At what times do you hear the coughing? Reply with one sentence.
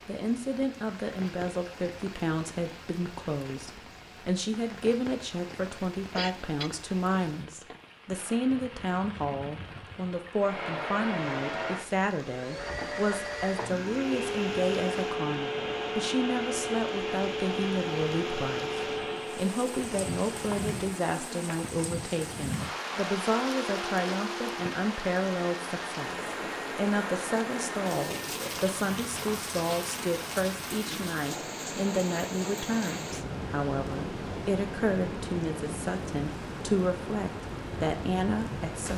The coughing can be heard from 6.1 to 6.8 s.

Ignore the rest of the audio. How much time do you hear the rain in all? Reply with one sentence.
The rain can be heard for 39 seconds in total.